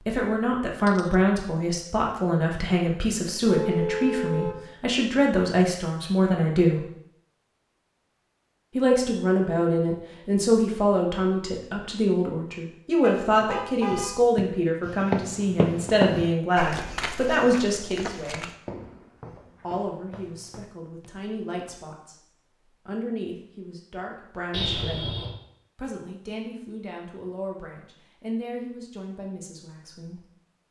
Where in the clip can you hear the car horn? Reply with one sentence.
You can hear the car horn from 3.5 to 4.6 s, from 13.0 to 14.2 s and from 24.5 to 25.4 s.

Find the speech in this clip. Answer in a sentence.
The speech can be heard from 0.1 to 6.8 s, from 8.8 to 18.5 s, from 19.6 to 22.1 s, from 22.9 to 25.1 s and from 25.8 to 30.2 s.